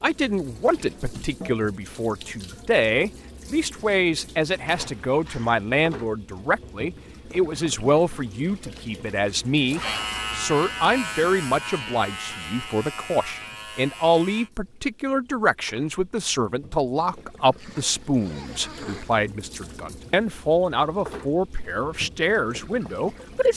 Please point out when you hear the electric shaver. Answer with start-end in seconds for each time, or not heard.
9.8-14.5.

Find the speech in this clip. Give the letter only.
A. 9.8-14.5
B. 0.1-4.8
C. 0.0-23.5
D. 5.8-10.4
C.